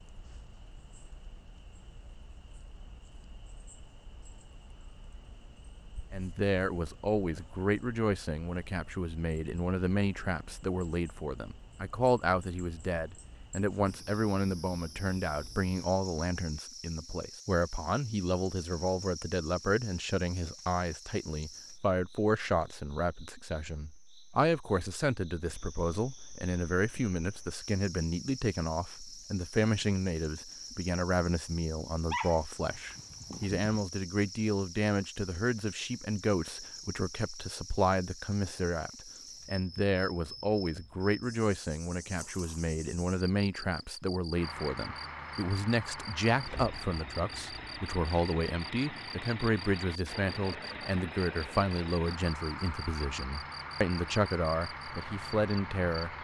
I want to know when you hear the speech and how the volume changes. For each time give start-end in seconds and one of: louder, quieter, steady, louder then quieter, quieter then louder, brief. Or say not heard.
6.1-56.1 steady.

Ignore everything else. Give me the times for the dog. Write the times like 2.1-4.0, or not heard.
31.9-33.8.